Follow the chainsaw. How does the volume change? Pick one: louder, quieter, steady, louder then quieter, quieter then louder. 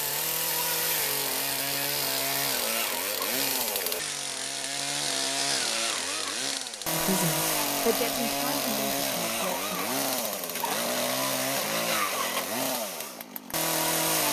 steady.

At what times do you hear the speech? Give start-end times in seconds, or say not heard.
6.9-9.8.